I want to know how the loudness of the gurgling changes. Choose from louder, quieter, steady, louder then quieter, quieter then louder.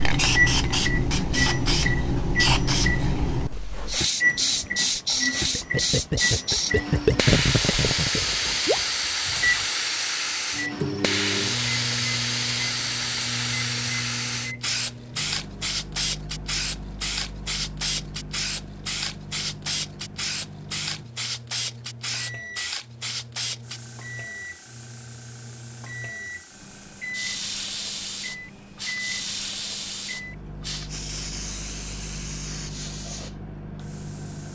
louder then quieter.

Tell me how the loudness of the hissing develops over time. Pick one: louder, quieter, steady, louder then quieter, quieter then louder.
quieter.